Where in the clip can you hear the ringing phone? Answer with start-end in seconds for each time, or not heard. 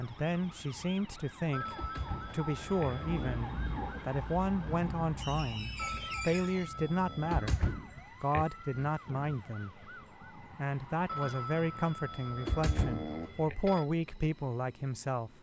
1.5-3.5, 5.8-7.5, 11.1-13.8.